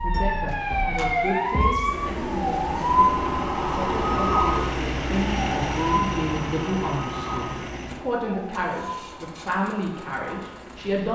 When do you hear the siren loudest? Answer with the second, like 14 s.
3 s.